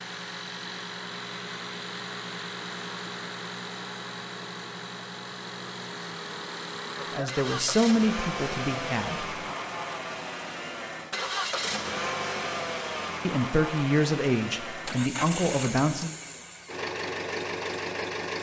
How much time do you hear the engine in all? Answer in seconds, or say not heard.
18 s.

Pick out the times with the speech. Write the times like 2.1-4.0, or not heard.
7.0-9.6, 13.2-16.1.